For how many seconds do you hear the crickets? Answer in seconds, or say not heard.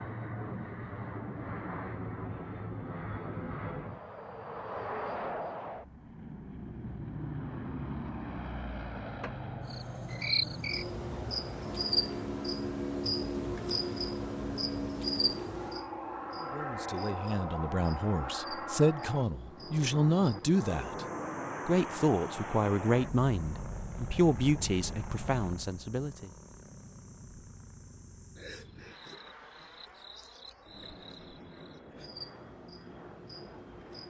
24 s.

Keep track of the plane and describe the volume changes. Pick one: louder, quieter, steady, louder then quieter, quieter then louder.
quieter.